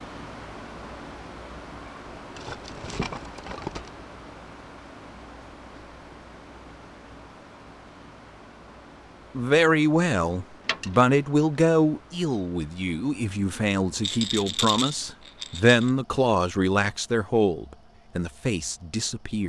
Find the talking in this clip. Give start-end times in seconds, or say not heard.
9.3-19.4.